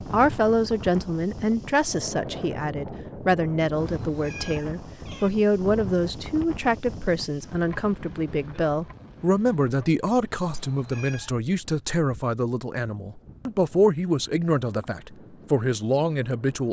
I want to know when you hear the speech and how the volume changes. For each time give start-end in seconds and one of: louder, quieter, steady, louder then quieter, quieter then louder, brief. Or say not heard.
0.0-16.6 steady.